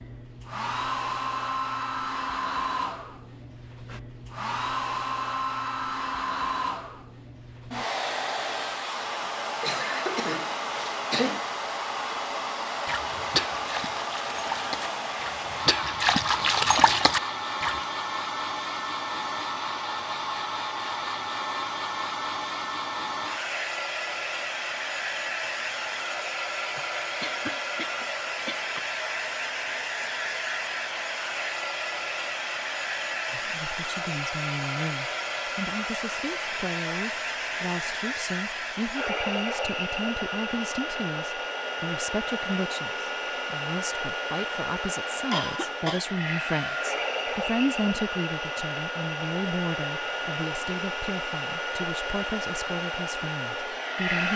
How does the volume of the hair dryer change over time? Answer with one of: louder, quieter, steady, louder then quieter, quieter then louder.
steady.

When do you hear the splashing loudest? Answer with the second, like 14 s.
17 s.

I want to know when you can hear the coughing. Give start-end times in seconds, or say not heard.
9.6-11.4, 26.8-28.8, 45.3-46.0.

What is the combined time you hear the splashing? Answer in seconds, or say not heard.
5 s.